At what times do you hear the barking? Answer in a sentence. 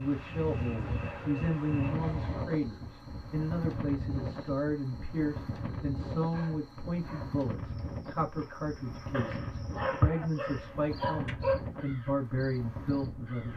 You can hear the barking from 0.8 to 2.6 s, from 6.3 to 7.4 s and from 9.1 to 11.6 s.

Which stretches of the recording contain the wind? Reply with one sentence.
The wind can be heard from 0.0 to 13.5 s.